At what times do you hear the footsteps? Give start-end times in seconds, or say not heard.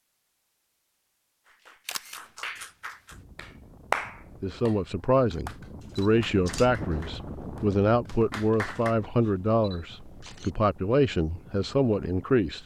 not heard.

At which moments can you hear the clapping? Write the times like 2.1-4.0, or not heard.
1.4-8.9.